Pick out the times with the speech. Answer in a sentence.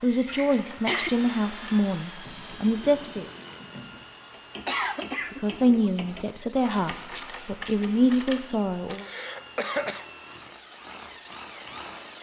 You can hear the speech from 0.0 to 3.2 s and from 5.3 to 9.1 s.